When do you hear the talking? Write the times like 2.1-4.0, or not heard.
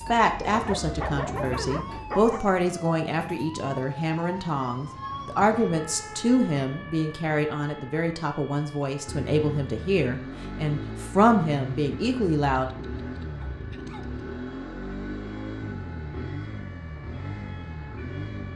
0.1-12.7.